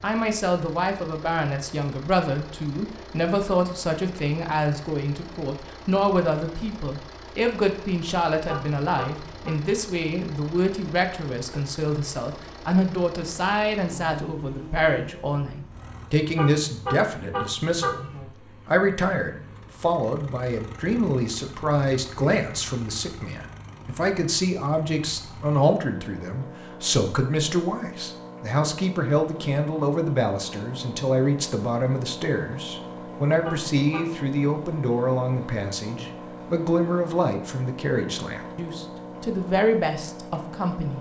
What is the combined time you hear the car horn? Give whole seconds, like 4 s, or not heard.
4 s.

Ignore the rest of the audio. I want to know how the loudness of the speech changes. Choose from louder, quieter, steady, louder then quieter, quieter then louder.
steady.